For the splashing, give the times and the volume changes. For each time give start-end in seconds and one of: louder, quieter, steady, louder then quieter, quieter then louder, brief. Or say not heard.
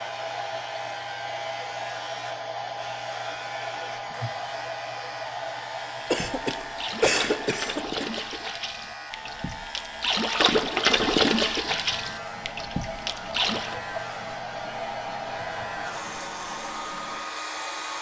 6.0-13.8 louder then quieter.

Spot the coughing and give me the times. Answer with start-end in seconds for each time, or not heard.
6.1-8.1.